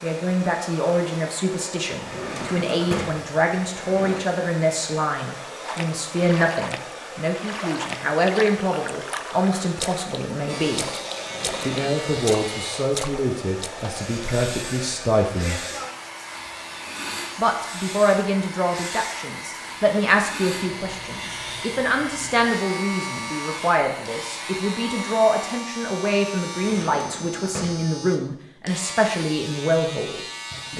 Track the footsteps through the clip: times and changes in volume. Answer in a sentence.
The footsteps can't be heard in this clip.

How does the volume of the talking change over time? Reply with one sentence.
The loudness of the talking stays about the same.